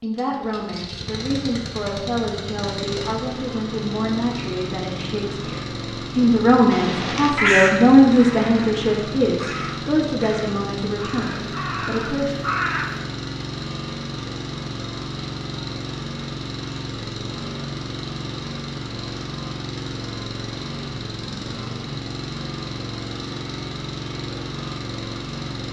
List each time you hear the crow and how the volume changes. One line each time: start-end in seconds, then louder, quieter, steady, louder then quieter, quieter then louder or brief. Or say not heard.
6.7-13.0 quieter then louder.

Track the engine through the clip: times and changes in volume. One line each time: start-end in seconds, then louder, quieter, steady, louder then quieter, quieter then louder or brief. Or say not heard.
0.0-25.6 steady.